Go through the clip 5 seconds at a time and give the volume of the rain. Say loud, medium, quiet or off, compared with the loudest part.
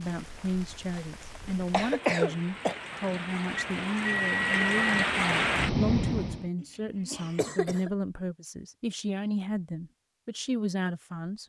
medium, loud, off.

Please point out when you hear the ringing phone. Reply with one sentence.
The ringing phone can be heard from 3.5 to 5.0 s.